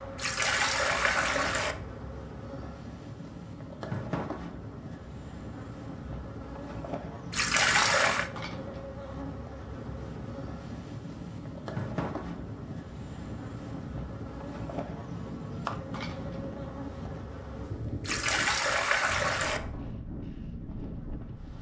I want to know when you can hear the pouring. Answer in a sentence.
The pouring can be heard from 0.1 to 1.8 s, from 7.3 to 8.3 s and from 18.1 to 19.6 s.